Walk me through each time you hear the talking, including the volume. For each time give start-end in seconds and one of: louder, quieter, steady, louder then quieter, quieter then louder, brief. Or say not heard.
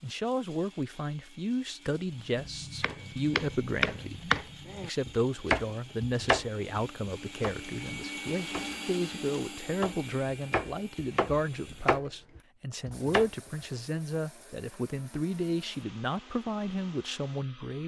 0.0-17.8 steady.